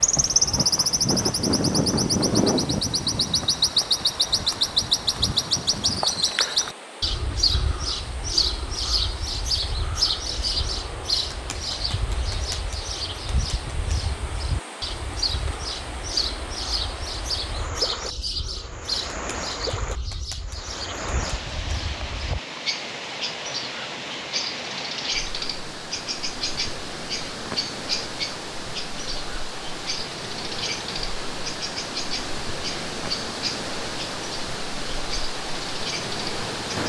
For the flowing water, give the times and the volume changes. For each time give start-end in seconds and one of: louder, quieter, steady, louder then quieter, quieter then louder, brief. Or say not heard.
0.0-36.8 louder.